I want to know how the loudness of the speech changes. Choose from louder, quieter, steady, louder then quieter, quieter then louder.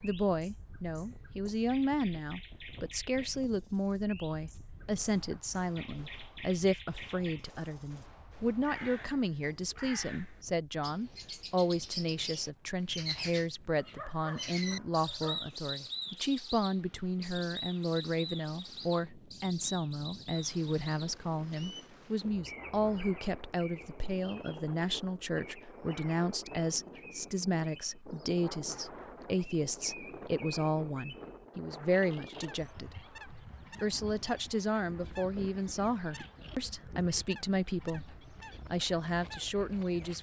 steady.